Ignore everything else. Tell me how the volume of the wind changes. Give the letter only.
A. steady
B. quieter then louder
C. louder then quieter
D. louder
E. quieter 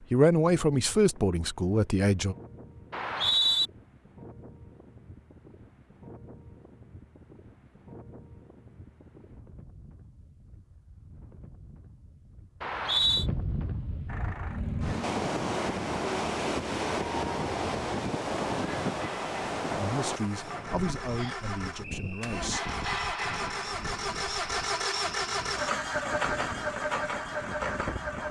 C.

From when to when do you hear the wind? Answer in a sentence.
The wind can be heard from 0.0 to 28.2 s.